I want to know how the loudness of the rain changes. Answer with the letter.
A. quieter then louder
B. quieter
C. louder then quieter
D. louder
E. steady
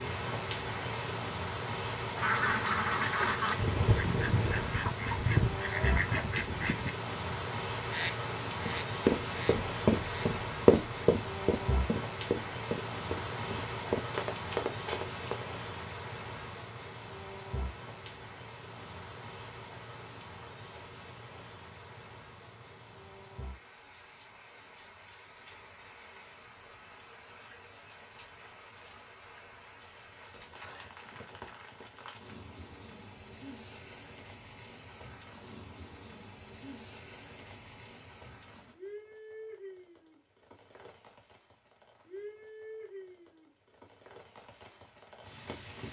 B.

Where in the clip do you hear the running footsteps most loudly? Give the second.
11 s.